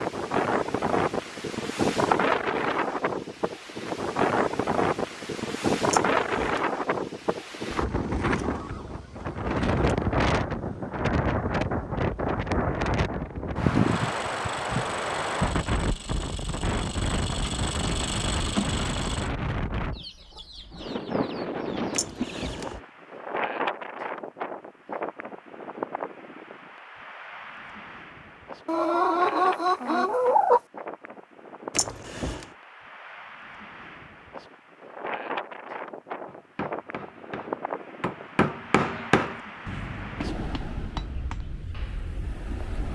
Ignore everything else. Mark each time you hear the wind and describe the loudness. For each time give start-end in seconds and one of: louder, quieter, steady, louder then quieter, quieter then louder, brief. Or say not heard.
0.0-42.9 quieter.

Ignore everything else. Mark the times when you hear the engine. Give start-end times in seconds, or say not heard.
13.8-19.3.